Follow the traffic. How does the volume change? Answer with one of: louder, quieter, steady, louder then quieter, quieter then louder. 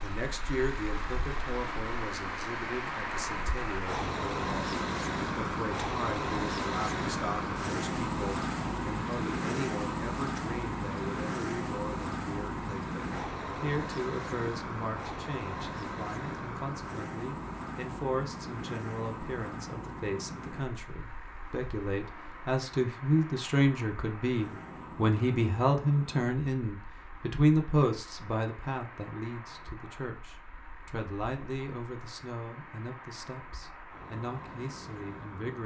quieter.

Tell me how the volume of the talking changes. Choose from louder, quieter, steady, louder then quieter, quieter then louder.
louder then quieter.